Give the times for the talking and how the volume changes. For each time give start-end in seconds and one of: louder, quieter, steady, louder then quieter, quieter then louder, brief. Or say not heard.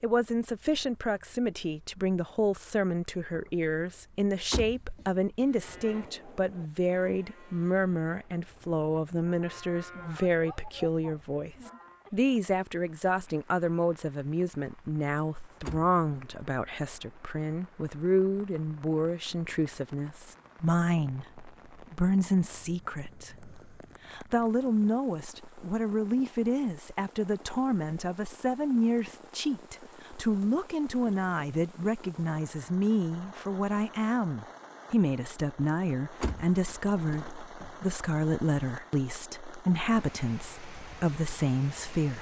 0.0-42.1 steady.